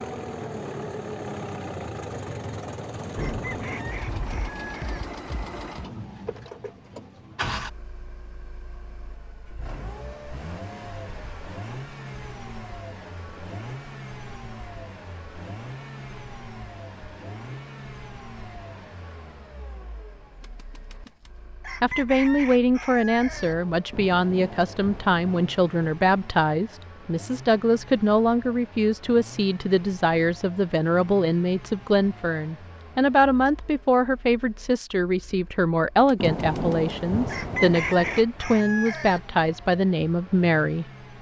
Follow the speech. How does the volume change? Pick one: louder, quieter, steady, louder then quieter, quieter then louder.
steady.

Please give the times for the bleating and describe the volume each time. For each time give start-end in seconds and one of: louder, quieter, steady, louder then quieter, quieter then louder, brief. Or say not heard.
not heard.